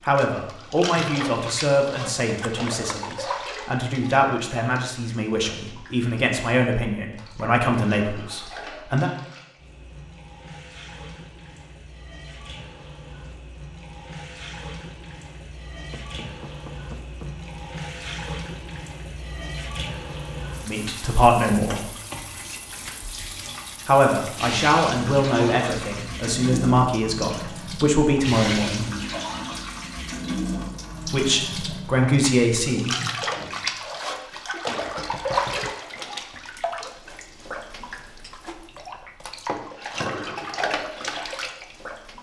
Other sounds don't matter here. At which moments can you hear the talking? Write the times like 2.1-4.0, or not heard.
0.1-9.1, 20.6-21.9, 23.9-28.9, 31.1-33.0.